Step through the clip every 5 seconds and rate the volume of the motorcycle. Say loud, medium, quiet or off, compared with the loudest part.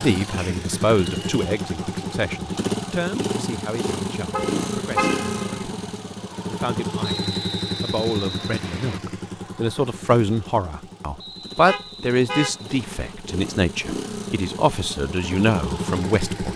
loud, loud, medium, loud.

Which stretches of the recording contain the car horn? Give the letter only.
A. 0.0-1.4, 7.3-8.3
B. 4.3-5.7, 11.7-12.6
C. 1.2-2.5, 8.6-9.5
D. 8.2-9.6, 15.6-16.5
B.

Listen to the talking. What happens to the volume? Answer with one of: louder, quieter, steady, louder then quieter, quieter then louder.
quieter then louder.